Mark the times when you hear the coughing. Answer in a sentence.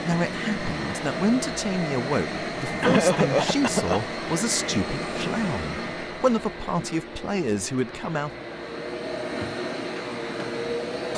You can hear the coughing from 2.8 to 4.0 s.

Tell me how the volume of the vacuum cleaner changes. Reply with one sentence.
The loudness of the vacuum cleaner goes down, then up.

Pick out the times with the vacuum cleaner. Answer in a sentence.
The vacuum cleaner can be heard from 0.0 to 11.1 s.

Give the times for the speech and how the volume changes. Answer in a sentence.
You can hear the speech from 0.0 to 8.3 s, at a steady volume.